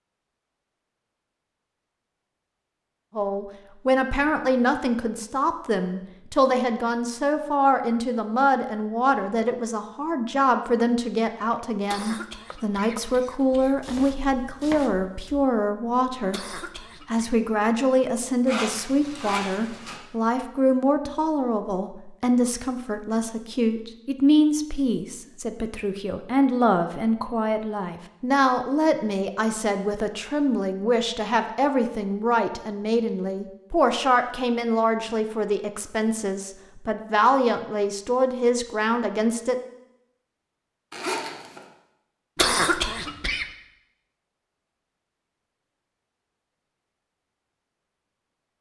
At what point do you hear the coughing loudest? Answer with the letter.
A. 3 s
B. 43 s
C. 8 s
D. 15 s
B.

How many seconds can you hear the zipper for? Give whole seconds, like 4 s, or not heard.
2 s.